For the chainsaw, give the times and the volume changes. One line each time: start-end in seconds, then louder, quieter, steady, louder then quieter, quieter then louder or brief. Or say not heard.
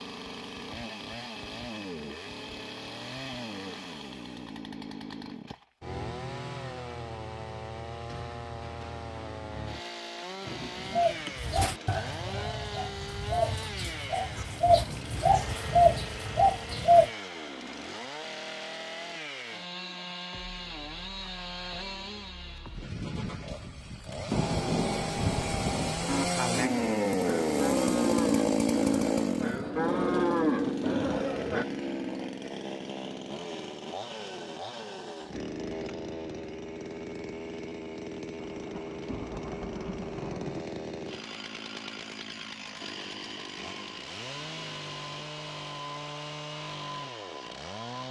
0.0-48.0 louder then quieter.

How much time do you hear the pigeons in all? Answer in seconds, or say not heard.
6 s.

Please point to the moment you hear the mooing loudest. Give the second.
30 s.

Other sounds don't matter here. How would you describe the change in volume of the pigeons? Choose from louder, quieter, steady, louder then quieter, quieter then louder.
louder.